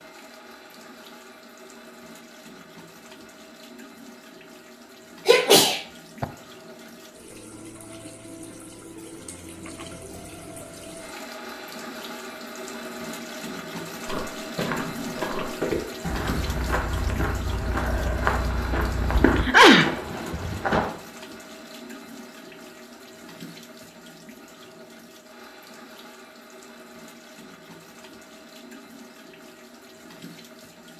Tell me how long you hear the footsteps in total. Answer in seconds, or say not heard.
7 s.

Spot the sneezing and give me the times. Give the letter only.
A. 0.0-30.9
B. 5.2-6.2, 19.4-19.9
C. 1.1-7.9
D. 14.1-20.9
B.